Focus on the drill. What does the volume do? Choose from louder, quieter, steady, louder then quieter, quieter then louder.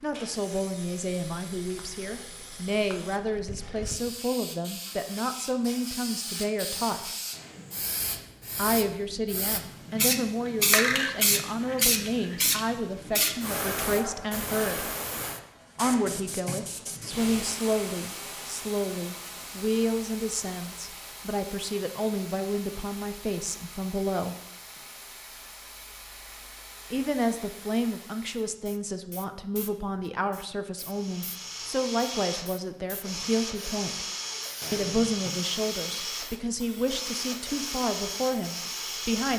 steady.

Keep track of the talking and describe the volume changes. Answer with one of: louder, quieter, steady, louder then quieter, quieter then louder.
steady.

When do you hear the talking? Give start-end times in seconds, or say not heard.
0.0-7.1, 8.6-14.9, 15.8-24.4, 26.9-34.0, 34.7-39.3.